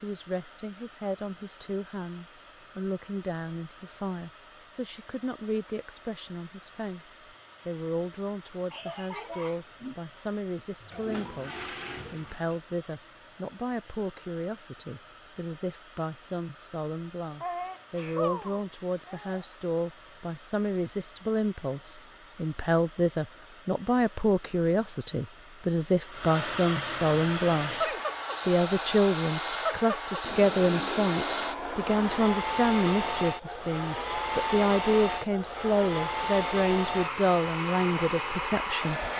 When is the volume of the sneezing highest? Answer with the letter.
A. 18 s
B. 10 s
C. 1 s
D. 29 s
A.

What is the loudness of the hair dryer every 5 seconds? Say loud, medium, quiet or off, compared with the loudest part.
quiet, quiet, quiet, quiet, quiet, loud, loud, loud.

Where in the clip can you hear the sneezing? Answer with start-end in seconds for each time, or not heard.
8.7-9.9, 17.4-19.4, 27.7-28.1.